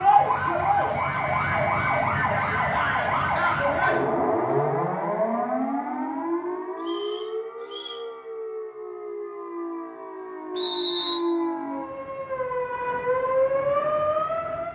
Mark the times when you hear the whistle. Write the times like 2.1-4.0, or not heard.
0.9-2.1, 6.8-8.0, 10.6-11.2.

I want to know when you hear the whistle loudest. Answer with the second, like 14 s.
11 s.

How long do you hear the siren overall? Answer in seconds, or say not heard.
15 s.